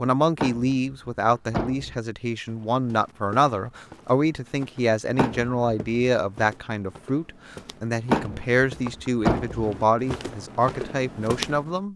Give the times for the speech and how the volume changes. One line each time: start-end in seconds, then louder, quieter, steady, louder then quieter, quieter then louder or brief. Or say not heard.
0.0-11.9 steady.